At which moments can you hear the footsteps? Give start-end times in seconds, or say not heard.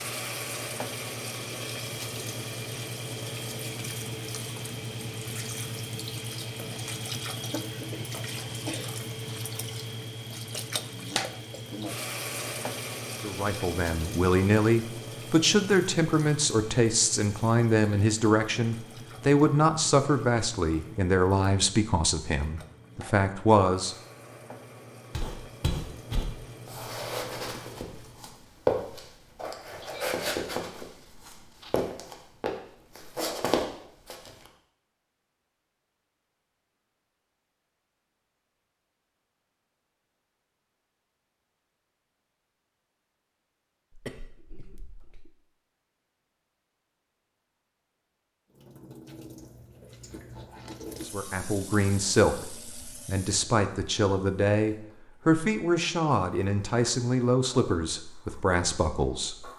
25.1-34.5.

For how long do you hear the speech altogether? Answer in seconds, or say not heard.
19 s.